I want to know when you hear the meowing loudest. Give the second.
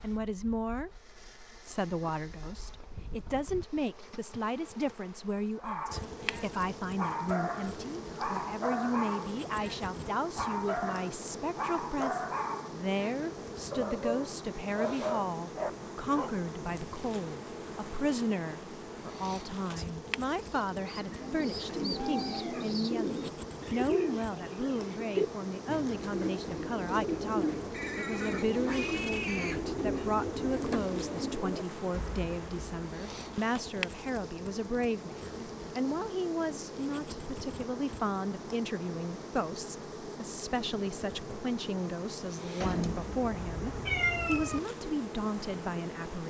44 s.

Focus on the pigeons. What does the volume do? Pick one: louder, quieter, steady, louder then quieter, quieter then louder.
steady.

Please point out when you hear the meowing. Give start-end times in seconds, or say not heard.
42.6-44.6.